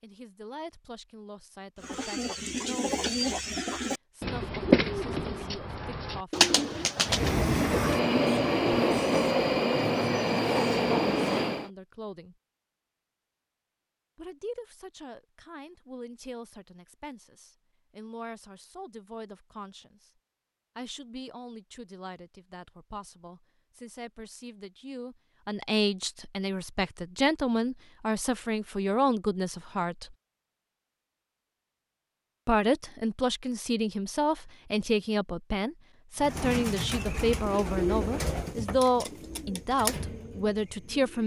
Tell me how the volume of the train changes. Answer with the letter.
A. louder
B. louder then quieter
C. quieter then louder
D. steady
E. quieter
D.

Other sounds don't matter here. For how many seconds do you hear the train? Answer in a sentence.
You can hear the train for 5 seconds altogether.